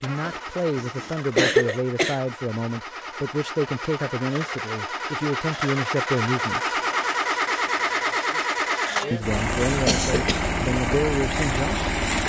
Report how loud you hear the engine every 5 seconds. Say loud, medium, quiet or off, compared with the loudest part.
medium, loud, loud.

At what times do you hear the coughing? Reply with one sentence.
You can hear the coughing from 0.2 to 2.2 s and from 9.5 to 10.7 s.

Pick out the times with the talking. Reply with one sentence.
You can hear the talking from 0.0 to 6.8 s and from 9.1 to 11.9 s.